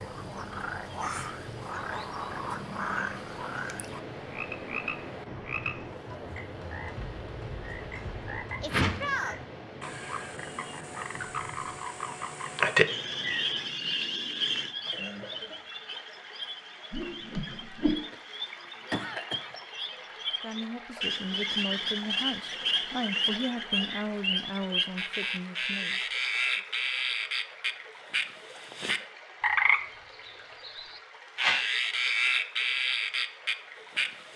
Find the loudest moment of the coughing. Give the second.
19 s.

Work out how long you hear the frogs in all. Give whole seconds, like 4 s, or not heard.
34 s.